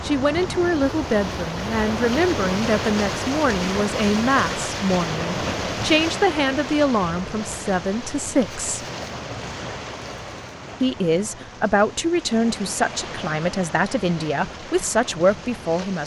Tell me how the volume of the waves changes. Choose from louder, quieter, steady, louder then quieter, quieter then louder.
quieter.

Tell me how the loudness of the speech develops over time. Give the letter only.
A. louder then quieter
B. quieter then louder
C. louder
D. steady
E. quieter
D.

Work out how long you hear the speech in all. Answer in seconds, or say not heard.
14 s.